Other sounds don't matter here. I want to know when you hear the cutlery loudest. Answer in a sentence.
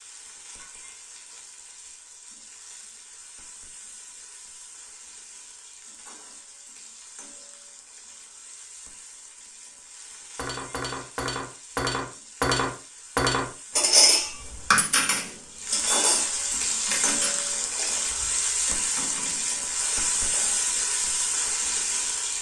The loudest moment of the cutlery is at 14 seconds.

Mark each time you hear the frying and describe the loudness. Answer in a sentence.
You can hear the frying from 0.0 to 22.3 s, getting louder.